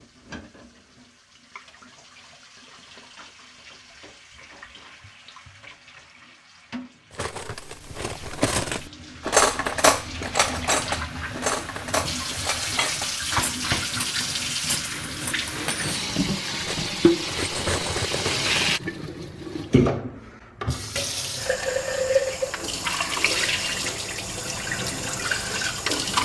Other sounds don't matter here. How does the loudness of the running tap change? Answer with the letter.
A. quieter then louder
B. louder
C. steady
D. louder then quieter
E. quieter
B.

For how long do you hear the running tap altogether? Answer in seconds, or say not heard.
26 s.